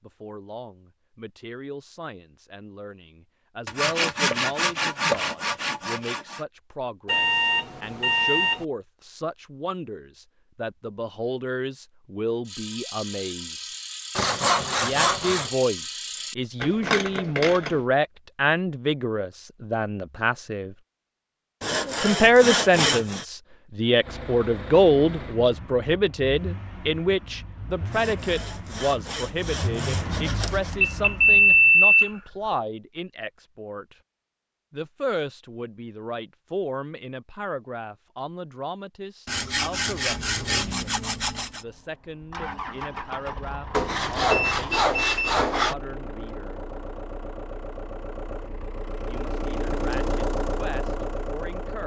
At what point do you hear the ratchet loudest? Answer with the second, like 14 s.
17 s.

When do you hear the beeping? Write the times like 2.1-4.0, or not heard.
7.0-8.7, 30.8-32.5, 44.1-45.2.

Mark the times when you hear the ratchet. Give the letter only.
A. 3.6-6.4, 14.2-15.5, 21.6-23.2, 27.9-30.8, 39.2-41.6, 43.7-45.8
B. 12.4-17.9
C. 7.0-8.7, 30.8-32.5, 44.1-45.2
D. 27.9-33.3
B.